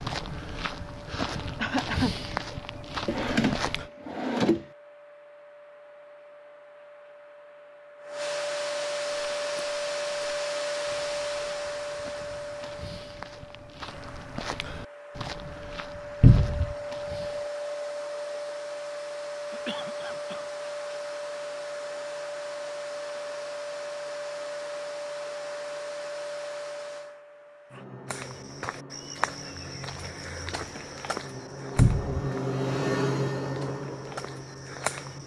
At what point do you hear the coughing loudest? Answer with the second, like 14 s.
2 s.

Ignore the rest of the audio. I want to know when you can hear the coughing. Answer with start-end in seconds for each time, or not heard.
1.6-2.1, 19.5-20.4.